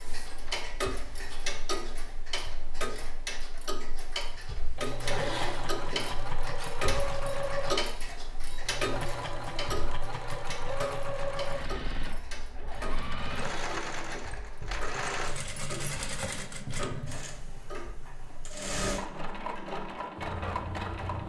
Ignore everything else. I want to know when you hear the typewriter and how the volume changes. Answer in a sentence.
The typewriter can't be heard in this clip.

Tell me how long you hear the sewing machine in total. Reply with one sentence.
The sewing machine can be heard for 17 seconds in total.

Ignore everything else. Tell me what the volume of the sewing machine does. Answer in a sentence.
The volume of the sewing machine stays about the same.